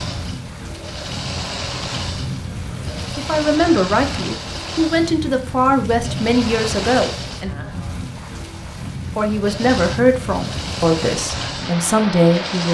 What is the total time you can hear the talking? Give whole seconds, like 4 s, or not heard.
8 s.